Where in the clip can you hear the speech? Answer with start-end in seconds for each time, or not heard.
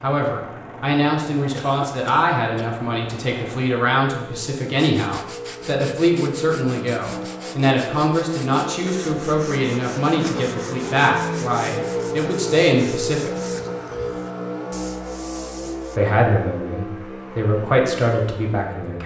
0.0-13.3, 15.9-19.0.